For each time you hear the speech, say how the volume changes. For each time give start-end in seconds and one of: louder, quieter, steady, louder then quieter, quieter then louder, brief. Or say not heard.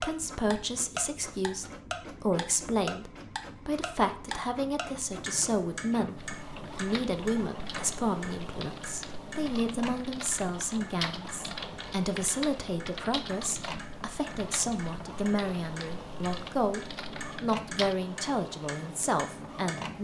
0.0-19.9 steady.